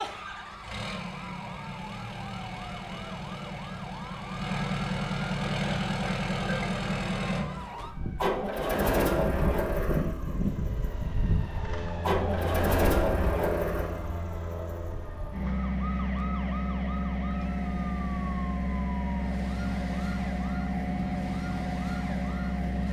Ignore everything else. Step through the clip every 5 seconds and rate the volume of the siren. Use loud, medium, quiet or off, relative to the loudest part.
medium, loud, loud, medium, medium.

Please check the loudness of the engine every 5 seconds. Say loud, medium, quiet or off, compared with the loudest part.
medium, loud, loud, loud, loud.